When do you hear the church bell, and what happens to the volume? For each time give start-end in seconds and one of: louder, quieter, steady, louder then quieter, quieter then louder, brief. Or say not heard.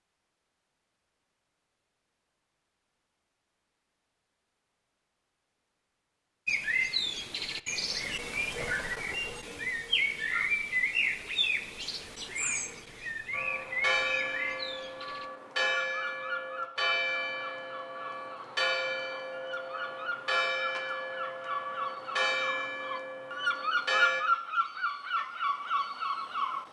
13.3-24.2 steady.